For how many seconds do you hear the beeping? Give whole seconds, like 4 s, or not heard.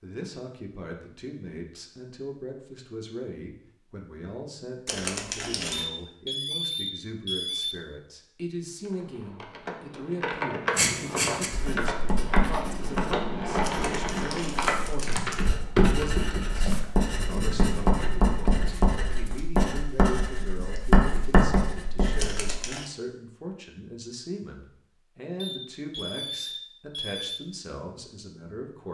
4 s.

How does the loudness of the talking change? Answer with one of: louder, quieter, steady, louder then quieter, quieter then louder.
steady.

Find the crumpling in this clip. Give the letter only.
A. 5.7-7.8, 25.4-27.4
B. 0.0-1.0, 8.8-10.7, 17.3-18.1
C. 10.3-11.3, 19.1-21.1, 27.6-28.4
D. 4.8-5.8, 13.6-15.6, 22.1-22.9
D.